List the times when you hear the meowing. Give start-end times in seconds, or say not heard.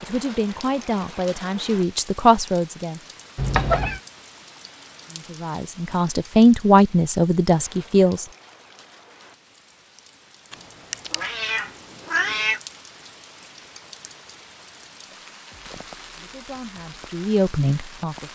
3.4-4.0, 10.5-12.6.